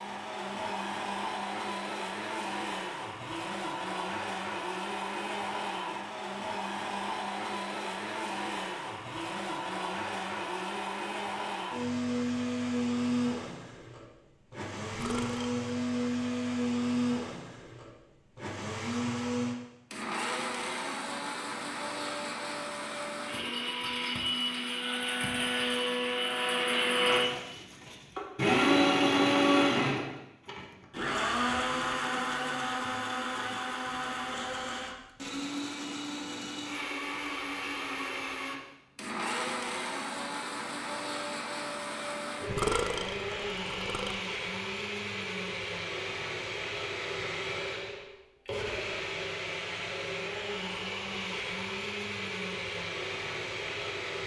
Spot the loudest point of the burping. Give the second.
43 s.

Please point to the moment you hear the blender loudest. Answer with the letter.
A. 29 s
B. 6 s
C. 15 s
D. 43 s
A.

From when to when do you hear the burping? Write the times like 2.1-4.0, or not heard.
14.9-15.6, 42.5-44.1.